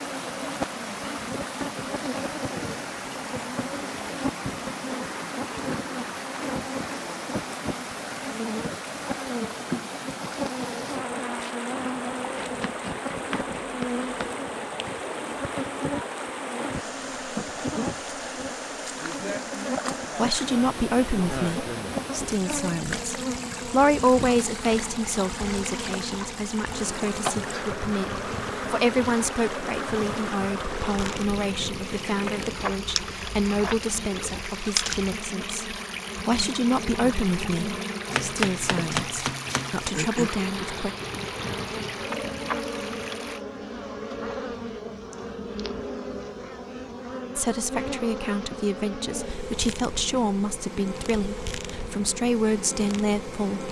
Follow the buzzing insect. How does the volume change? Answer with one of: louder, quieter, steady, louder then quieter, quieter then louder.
steady.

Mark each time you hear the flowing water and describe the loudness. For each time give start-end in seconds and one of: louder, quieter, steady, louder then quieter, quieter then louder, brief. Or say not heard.
0.0-43.5 steady.